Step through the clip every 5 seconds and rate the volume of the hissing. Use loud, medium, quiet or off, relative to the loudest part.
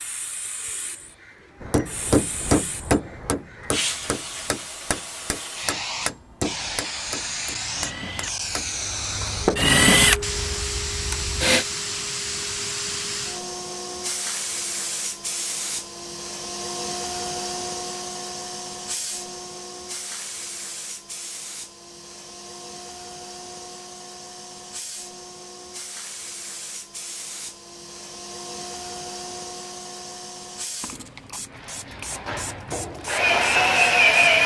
medium, loud, loud, loud, medium, medium, medium.